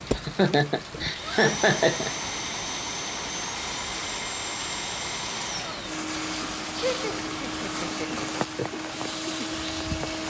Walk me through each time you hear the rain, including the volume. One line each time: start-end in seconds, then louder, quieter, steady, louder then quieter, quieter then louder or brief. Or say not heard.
0.0-10.2 steady.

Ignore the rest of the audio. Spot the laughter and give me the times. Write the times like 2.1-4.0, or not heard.
0.1-2.1, 6.8-8.2.